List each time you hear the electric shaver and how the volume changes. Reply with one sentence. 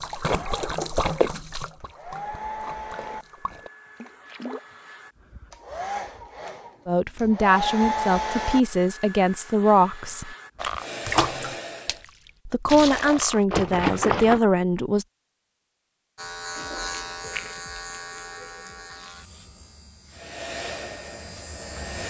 You can hear the electric shaver from 16.1 to 22.0 s, getting quieter then louder.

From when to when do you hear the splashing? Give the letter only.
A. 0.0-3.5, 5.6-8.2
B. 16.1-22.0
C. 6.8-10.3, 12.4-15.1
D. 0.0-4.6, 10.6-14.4
D.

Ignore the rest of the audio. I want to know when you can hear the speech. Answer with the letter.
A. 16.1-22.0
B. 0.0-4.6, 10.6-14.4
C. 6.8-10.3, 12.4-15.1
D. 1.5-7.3
C.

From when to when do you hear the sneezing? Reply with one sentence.
The sneezing can't be heard in this clip.